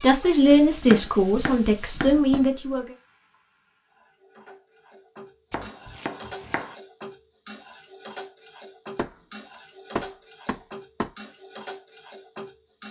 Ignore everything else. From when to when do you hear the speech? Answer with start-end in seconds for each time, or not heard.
0.0-2.9.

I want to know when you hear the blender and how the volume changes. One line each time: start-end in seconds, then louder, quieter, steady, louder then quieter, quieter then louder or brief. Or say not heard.
not heard.